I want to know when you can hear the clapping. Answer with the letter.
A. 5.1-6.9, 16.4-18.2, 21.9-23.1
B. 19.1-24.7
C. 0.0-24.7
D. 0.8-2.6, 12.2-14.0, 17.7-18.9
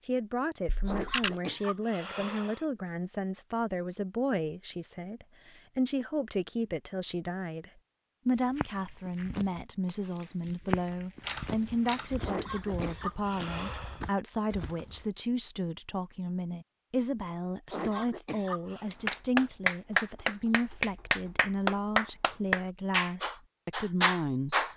B.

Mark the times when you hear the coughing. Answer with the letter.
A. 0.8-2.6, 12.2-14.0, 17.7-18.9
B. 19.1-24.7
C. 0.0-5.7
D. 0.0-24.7
A.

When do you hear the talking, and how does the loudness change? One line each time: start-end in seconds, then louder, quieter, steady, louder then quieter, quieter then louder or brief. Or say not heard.
0.0-24.7 steady.